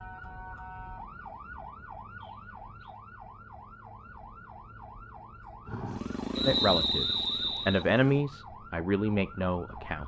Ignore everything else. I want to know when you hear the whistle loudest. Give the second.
7 s.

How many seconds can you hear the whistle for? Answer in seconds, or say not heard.
2 s.